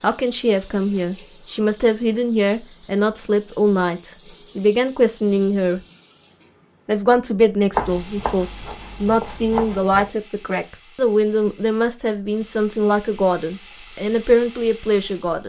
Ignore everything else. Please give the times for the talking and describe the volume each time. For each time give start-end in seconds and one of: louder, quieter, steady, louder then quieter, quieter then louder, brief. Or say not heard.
0.0-5.8 steady
6.8-15.4 steady.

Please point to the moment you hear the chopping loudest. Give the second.
8 s.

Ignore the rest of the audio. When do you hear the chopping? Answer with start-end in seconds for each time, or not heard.
7.7-10.1.